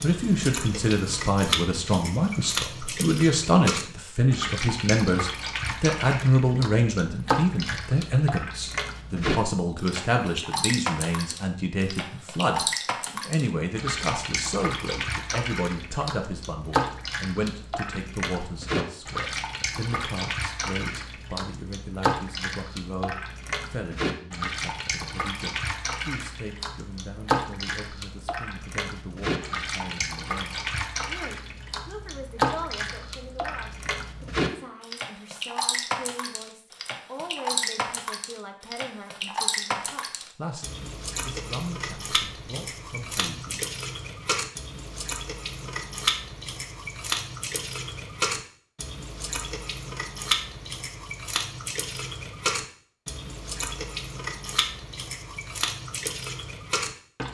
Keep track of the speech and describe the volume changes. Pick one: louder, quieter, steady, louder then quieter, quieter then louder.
quieter.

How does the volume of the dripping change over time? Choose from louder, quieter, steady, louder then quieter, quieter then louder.
steady.